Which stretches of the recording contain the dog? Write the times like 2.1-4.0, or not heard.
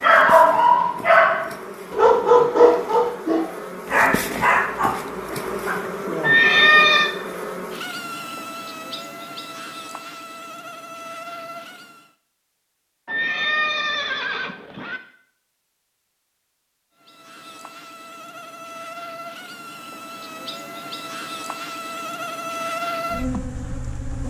0.0-5.8.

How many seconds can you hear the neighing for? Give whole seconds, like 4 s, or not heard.
3 s.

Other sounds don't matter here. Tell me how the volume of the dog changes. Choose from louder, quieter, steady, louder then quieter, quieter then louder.
quieter.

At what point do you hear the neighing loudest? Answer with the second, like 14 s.
7 s.